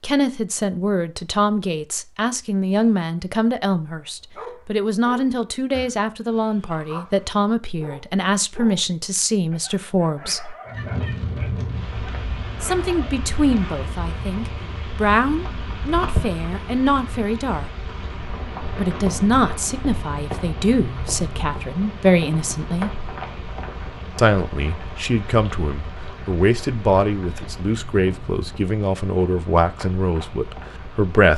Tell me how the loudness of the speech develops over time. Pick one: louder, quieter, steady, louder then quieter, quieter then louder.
steady.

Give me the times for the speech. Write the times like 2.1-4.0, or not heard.
0.0-10.6, 12.6-17.7, 18.8-22.9, 24.1-31.3.